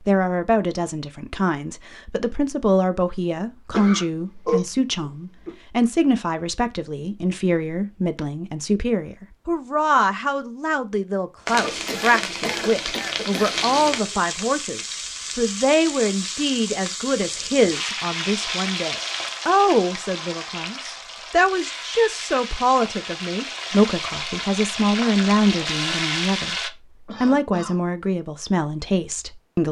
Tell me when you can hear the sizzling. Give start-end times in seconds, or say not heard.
11.4-26.7.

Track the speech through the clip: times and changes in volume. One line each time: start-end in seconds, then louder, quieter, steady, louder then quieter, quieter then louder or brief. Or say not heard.
0.0-29.6 steady.